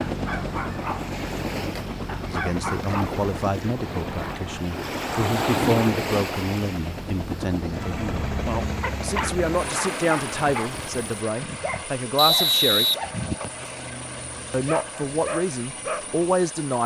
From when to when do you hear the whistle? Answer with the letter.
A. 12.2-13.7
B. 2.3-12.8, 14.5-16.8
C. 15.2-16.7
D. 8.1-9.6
A.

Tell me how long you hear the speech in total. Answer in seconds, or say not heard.
13 s.